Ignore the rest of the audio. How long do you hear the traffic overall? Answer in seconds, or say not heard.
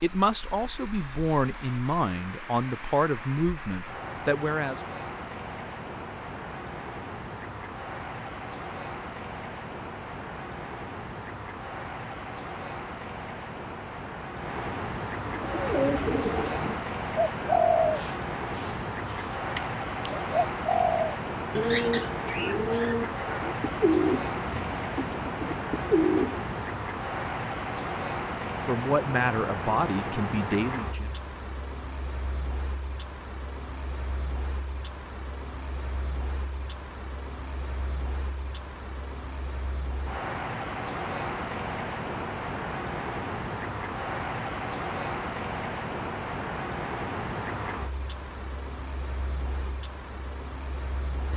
51 s.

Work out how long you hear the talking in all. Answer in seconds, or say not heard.
7 s.